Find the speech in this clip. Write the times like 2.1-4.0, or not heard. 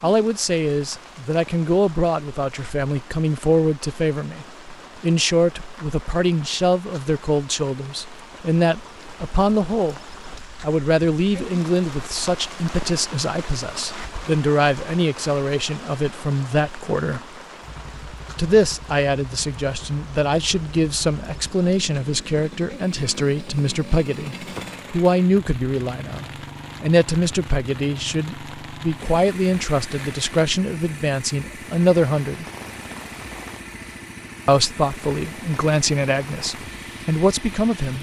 0.0-17.2, 18.4-32.5, 34.5-37.9.